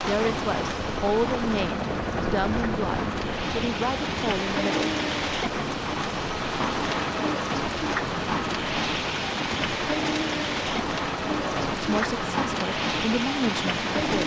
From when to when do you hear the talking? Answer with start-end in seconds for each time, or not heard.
0.1-5.0, 11.8-14.2.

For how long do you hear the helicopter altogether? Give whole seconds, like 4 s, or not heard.
14 s.